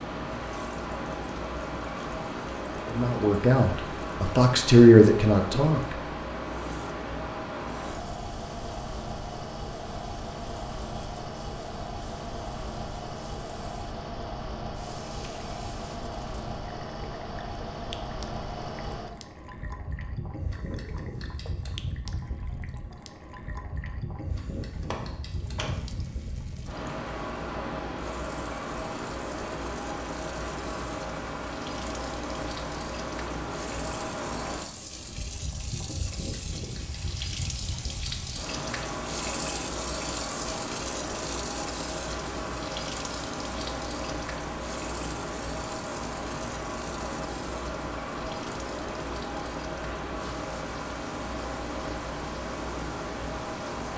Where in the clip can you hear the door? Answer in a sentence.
The door can be heard from 24.9 to 26.0 s.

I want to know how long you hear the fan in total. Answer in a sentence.
You can hear the fan for 54 seconds altogether.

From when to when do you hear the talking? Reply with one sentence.
You can hear the talking from 2.9 to 6.0 s.